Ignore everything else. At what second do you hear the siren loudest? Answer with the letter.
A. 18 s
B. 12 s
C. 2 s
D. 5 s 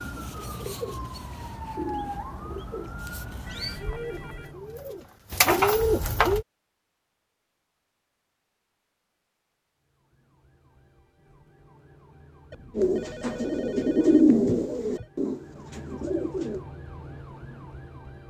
C.